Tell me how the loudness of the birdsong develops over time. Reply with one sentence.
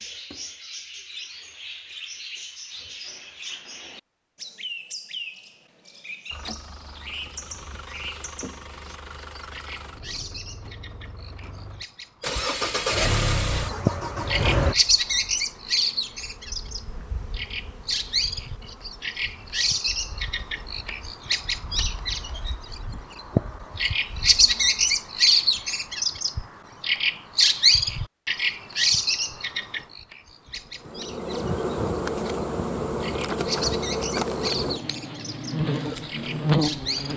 The volume of the birdsong goes up, then down.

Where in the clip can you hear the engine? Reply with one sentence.
The engine can be heard from 6.3 to 14.8 s.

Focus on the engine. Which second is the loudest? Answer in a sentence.
The loudest moment of the engine is at 13 seconds.